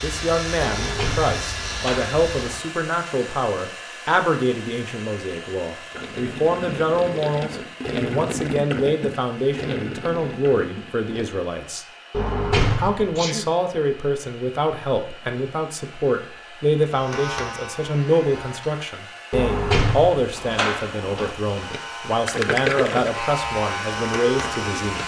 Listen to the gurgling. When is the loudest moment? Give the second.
23 s.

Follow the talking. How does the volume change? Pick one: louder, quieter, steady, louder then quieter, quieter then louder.
steady.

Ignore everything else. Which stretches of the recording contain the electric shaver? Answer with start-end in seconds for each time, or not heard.
0.0-2.6, 16.9-18.8, 21.4-25.0.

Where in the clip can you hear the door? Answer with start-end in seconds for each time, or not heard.
0.6-2.6, 12.1-13.2, 19.3-21.4.